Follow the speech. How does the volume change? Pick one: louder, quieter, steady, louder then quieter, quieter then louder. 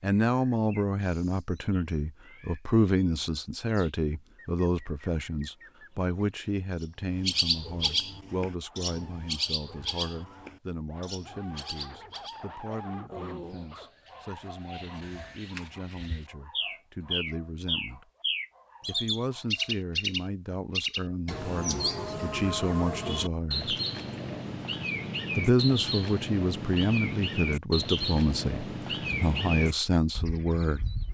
quieter then louder.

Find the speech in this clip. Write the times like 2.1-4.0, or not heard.
0.0-18.1, 18.9-23.7, 25.4-30.9.